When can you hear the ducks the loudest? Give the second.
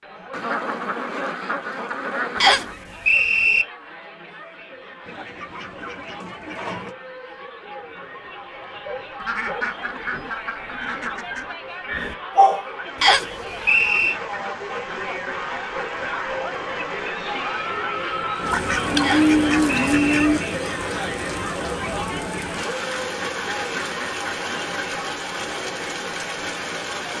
19 s.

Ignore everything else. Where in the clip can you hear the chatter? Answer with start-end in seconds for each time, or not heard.
0.0-27.1.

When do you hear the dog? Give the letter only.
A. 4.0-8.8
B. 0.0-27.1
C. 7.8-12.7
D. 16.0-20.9
C.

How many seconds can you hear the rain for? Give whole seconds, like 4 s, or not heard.
14 s.